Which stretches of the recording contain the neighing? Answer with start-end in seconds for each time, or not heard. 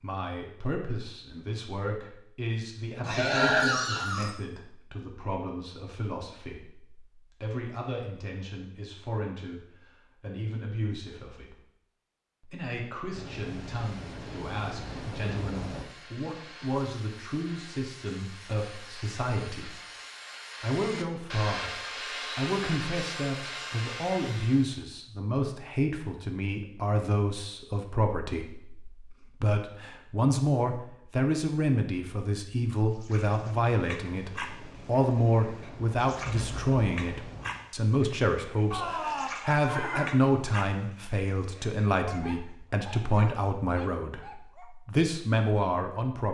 3.0-4.3, 38.7-40.2.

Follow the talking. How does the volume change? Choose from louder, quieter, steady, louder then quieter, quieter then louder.
louder.